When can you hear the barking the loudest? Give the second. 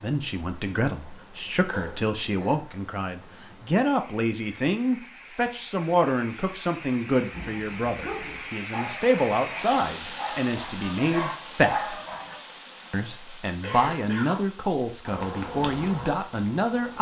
12 s.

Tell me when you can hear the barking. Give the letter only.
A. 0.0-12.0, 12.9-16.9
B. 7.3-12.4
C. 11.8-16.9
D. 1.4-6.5
B.